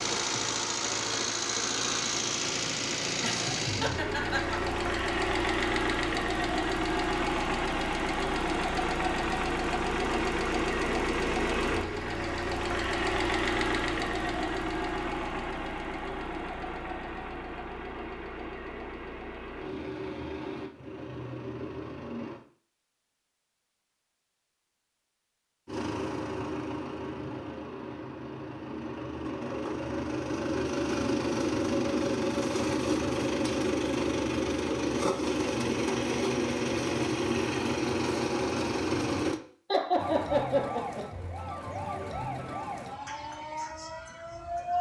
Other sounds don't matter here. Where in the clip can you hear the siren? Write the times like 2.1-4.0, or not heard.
40.0-44.7.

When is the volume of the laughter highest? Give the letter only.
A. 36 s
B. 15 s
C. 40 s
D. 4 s
C.